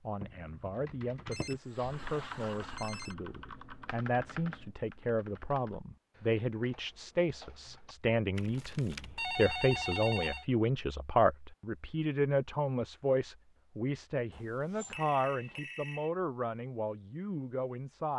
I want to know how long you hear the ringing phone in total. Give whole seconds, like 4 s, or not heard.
6 s.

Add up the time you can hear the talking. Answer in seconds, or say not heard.
18 s.